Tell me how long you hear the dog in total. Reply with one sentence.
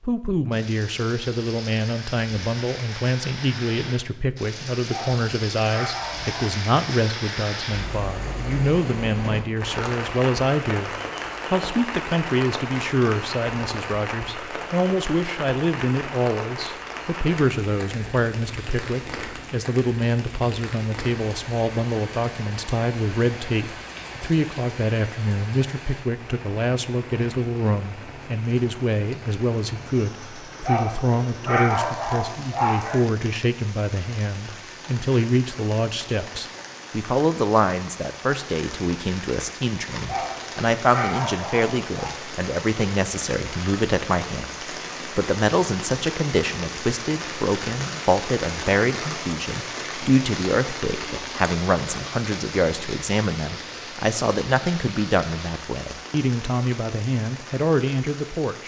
The dog can be heard for 6 seconds in total.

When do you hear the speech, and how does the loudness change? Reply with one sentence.
You can hear the speech from 0.0 to 58.6 s, at a steady volume.